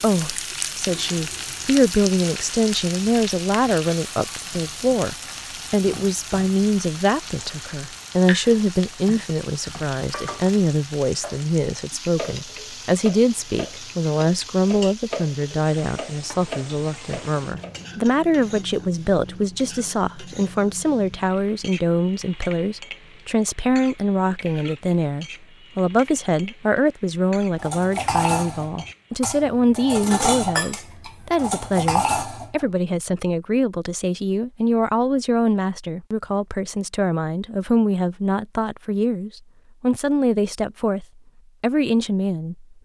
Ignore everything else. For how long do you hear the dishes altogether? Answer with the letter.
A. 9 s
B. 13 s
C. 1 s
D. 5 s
B.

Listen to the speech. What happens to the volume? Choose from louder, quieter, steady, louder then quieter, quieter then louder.
steady.